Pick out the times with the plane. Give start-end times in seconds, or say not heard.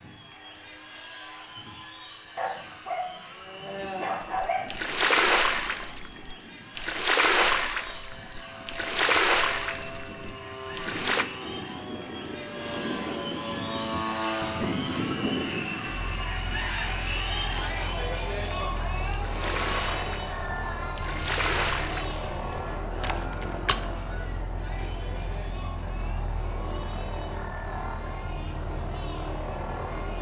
0.0-30.1.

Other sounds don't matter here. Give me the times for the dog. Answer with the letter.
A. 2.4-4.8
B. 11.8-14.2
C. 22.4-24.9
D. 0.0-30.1
A.